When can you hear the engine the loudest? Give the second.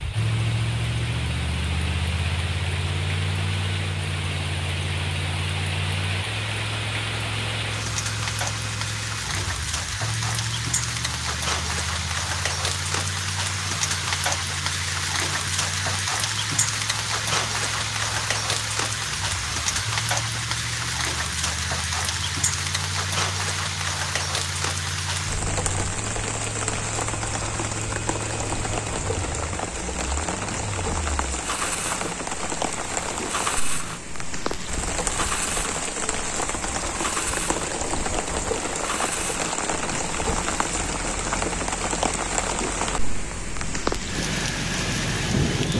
1 s.